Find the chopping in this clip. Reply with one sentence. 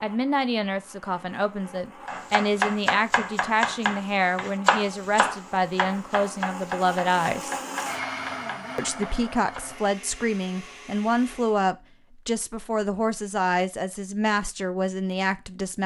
You can hear the chopping from 2.0 to 9.6 s.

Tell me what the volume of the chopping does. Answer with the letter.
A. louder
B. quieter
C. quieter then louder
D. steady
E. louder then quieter
B.